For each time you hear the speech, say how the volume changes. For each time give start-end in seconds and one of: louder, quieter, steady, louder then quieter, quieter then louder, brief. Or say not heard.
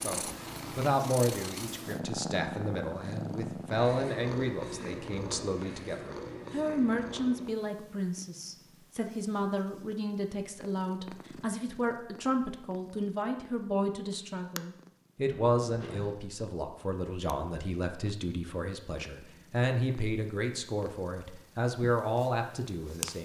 0.0-23.2 steady.